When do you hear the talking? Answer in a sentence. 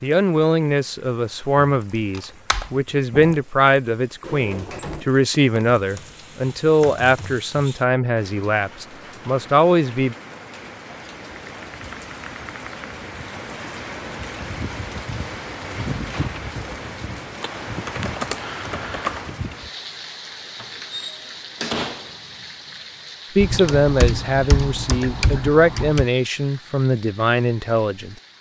You can hear the talking from 0.0 to 10.2 s and from 23.4 to 28.1 s.